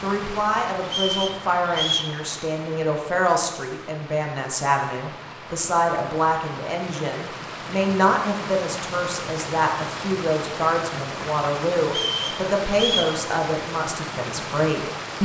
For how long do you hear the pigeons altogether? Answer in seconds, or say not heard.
not heard.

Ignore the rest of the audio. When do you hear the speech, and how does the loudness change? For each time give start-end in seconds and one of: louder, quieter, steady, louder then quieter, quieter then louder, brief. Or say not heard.
0.0-15.1 steady.